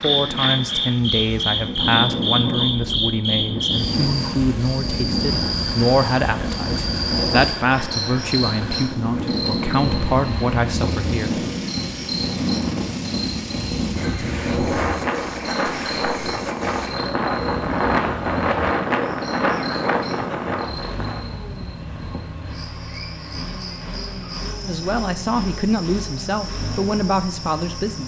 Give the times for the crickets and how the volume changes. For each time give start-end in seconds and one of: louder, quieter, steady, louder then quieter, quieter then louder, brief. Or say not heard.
0.0-28.0 quieter.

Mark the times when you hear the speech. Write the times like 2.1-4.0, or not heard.
0.0-11.4, 24.6-28.0.